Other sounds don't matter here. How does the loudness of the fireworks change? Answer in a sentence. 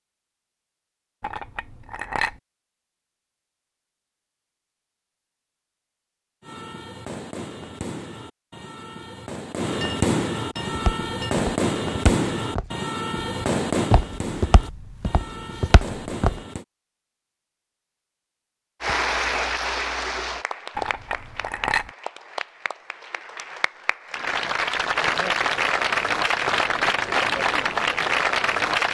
The loudness of the fireworks goes up, then down.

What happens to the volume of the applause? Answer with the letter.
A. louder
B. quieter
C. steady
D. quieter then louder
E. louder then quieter
D.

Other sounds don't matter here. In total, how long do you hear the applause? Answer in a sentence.
You can hear the applause for 10 seconds altogether.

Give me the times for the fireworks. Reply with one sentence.
The fireworks can be heard from 6.4 to 16.6 s.